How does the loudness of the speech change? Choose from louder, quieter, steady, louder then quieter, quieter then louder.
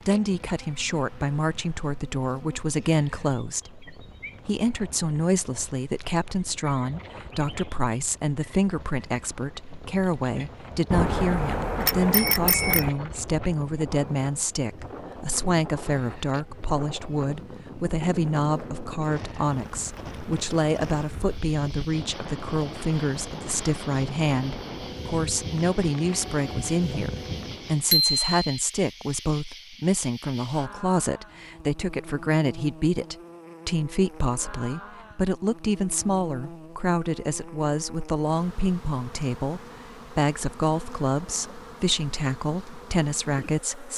steady.